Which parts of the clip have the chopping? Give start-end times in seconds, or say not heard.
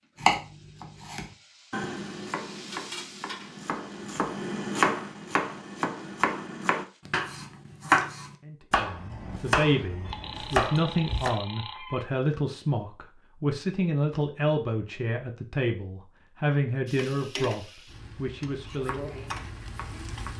0.2-11.3, 18.8-20.3.